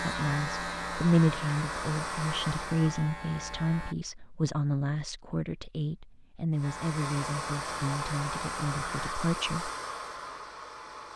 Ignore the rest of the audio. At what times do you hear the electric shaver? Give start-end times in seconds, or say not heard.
0.0-4.0, 6.6-9.2.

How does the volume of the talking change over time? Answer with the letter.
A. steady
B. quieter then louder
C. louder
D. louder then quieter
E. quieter
E.